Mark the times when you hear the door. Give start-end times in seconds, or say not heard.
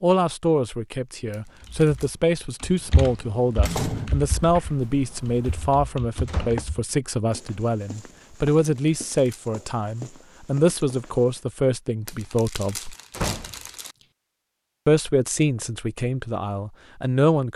3.6-4.2, 6.2-6.7, 13.1-13.6.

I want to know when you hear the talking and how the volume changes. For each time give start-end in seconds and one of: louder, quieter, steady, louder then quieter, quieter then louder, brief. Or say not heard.
0.0-12.9 steady
14.8-17.5 brief.